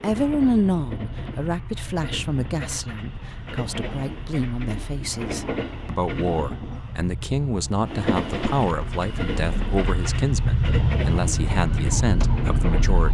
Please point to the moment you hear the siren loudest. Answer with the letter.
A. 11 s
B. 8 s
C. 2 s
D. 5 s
A.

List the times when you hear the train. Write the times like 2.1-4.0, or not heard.
0.0-13.0.